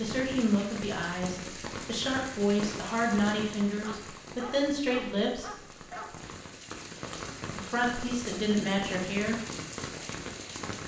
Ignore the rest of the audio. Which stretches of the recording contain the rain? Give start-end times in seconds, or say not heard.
0.0-10.8.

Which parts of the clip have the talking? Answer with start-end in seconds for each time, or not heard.
0.0-5.5, 7.5-9.4.